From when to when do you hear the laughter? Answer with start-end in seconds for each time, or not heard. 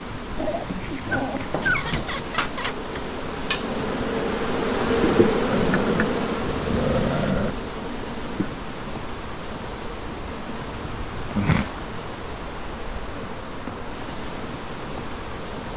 1.6-3.0.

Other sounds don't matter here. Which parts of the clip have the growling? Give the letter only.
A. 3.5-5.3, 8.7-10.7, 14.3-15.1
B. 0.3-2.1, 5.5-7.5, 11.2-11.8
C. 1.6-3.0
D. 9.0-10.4
B.